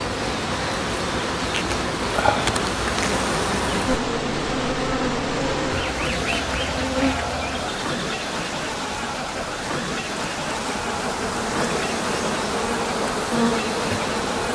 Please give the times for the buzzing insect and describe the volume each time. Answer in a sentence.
You can hear the buzzing insect from 0.0 to 14.5 s, getting quieter then louder.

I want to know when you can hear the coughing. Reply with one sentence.
You can't hear the coughing here.